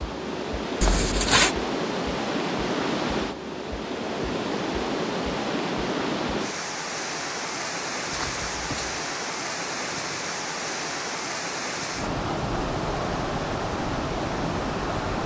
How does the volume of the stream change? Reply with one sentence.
The loudness of the stream stays about the same.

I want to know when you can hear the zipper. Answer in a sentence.
You can hear the zipper from 0.8 to 1.6 s and from 8.1 to 8.9 s.